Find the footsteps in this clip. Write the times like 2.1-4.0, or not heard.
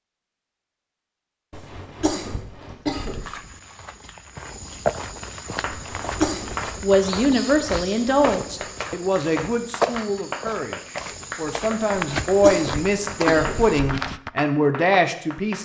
2.9-14.3.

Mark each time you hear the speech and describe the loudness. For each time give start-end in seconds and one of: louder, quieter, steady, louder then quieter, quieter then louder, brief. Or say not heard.
6.8-15.6 quieter then louder.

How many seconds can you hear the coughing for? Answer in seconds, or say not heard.
4 s.